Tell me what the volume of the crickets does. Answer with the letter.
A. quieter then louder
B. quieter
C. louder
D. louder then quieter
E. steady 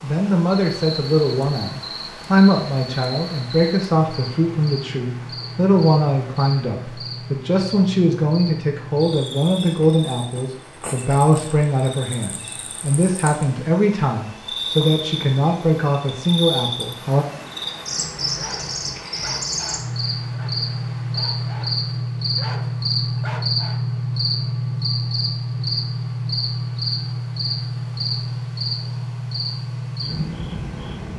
C.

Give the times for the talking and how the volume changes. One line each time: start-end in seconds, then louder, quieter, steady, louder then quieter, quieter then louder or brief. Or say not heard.
0.0-17.2 steady.